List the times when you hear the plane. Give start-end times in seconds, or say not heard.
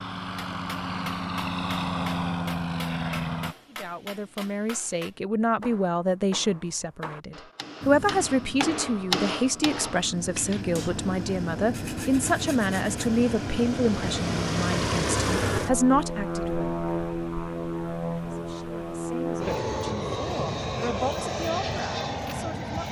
0.0-3.5, 7.8-22.8.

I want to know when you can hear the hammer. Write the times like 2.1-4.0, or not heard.
0.3-10.9.